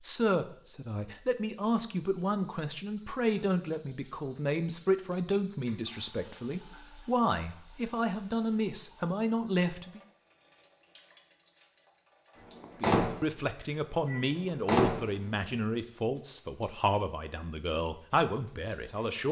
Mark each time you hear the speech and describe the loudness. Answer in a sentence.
You can hear the speech from 0.0 to 10.0 s, at a steady volume; and from 12.8 to 19.2 s, at a steady volume.